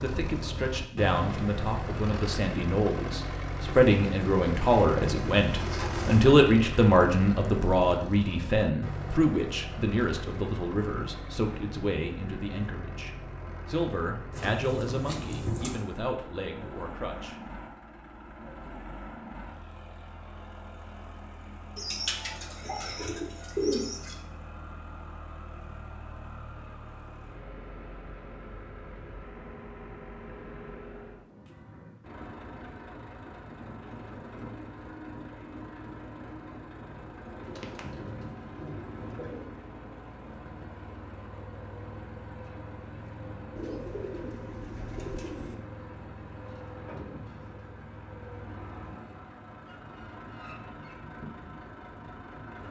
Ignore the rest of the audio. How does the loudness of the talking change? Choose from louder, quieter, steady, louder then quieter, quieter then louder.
louder then quieter.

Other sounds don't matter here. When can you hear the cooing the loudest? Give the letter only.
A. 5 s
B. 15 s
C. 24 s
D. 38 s
C.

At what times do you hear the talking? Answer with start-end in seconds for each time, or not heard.
0.0-17.4.